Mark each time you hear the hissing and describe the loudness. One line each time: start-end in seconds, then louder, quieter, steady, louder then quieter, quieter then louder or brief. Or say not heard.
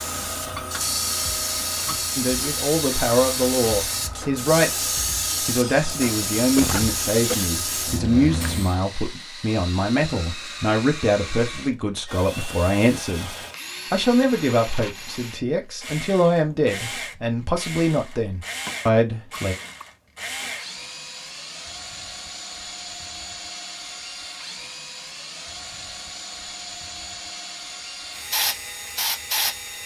0.0-8.8 steady
28.3-29.6 brief.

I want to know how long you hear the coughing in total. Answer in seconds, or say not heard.
2 s.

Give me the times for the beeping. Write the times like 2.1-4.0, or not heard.
not heard.